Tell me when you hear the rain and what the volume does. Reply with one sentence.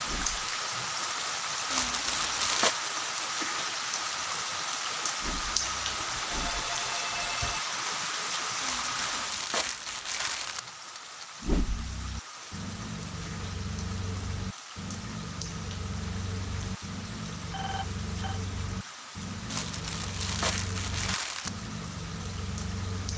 The rain can be heard from 0.0 to 23.1 s, getting quieter.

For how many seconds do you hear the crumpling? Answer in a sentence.
The crumpling can be heard for 5 seconds in total.